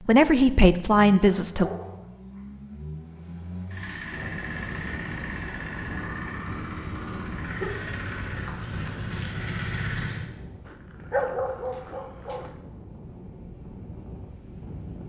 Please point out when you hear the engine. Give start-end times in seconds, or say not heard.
0.0-10.2.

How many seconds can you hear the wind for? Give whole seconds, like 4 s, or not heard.
11 s.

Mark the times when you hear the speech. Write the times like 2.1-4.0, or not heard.
0.1-1.7.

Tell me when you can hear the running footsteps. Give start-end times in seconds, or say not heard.
not heard.